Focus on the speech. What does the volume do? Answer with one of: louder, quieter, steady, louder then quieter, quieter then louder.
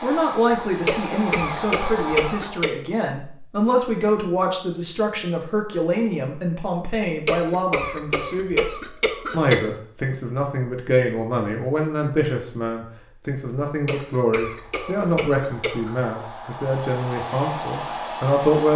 steady.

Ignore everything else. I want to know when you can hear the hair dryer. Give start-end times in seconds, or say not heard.
0.0-2.7, 14.6-18.7.